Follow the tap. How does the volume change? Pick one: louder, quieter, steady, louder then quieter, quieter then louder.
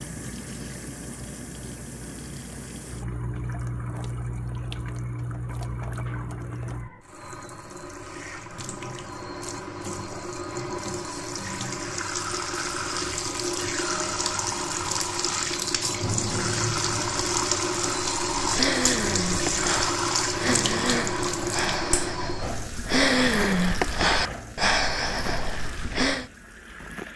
louder then quieter.